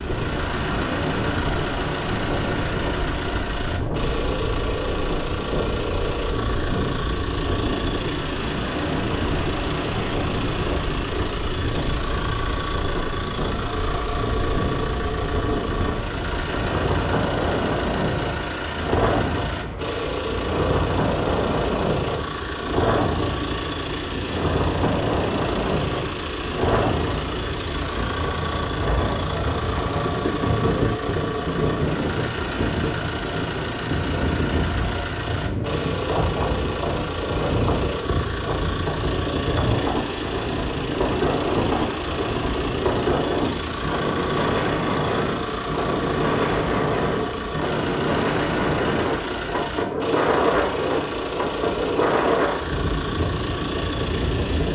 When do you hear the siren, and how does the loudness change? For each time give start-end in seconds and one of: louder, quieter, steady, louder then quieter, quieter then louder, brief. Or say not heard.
not heard.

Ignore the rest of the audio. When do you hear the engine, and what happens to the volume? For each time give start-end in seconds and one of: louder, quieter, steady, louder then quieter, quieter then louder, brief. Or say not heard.
0.0-54.7 steady.